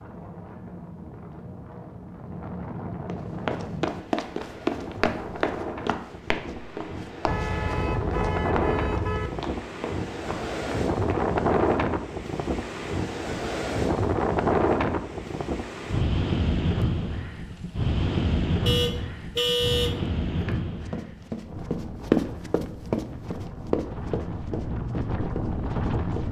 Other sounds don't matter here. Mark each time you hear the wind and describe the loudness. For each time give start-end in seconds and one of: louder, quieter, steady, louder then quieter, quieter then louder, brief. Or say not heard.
0.0-26.2 louder then quieter.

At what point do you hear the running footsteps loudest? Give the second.
22 s.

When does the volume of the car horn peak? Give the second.
20 s.